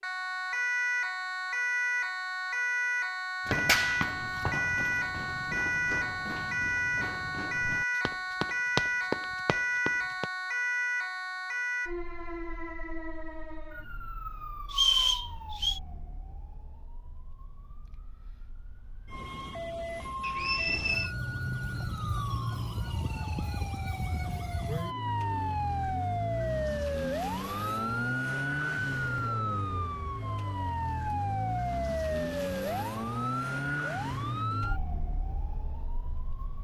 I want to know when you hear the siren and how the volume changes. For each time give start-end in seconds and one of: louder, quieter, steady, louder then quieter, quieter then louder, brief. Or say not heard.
0.0-36.5 quieter then louder.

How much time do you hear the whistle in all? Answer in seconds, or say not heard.
2 s.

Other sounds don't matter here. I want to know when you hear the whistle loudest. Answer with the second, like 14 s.
15 s.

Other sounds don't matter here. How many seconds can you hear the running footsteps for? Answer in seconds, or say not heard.
7 s.